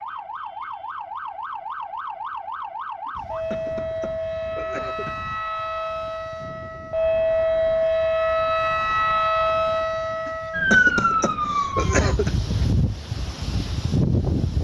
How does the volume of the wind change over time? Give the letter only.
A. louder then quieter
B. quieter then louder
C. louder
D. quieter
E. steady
C.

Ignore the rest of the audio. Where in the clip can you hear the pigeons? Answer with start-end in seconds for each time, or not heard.
not heard.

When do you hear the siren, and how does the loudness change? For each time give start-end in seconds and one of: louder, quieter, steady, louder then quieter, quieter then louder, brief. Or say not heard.
0.0-12.2 louder.